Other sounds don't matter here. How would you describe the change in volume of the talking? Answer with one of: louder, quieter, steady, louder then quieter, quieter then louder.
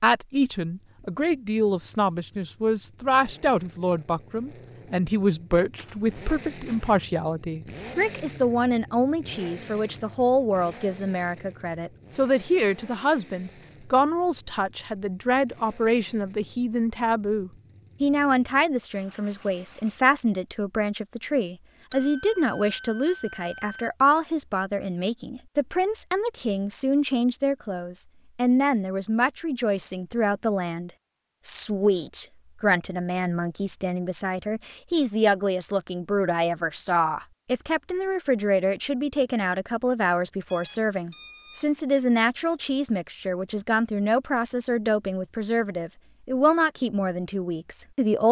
steady.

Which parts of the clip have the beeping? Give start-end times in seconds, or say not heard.
5.8-7.0, 21.9-23.9, 40.5-41.7.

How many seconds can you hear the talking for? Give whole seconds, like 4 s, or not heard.
48 s.